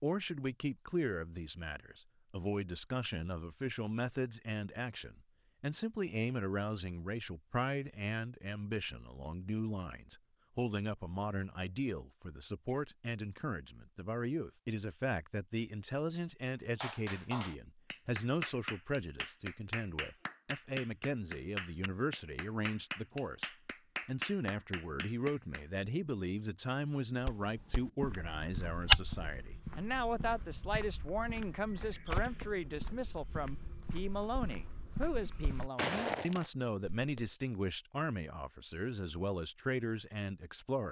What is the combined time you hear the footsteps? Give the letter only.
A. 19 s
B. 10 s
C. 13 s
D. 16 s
B.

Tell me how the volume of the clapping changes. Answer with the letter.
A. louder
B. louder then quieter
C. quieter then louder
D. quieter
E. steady
E.